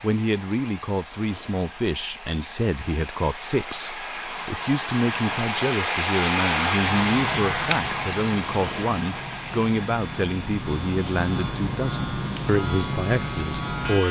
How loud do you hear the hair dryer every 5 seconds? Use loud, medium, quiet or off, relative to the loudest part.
medium, loud, quiet.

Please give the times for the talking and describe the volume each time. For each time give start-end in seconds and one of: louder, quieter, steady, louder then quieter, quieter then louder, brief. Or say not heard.
0.0-14.0 steady.